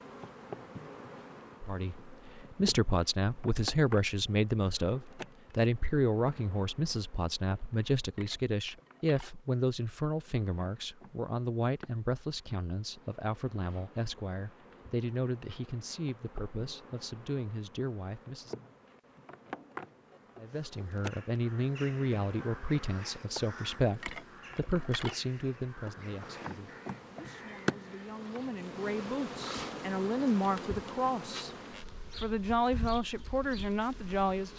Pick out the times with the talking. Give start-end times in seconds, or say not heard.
1.6-18.6, 20.4-31.5, 32.1-34.5.